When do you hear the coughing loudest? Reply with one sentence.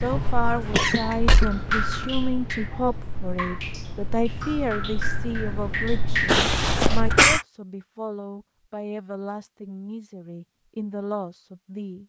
The loudest moment of the coughing is at 7 seconds.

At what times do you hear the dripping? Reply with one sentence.
The dripping can be heard from 0.0 to 7.4 s.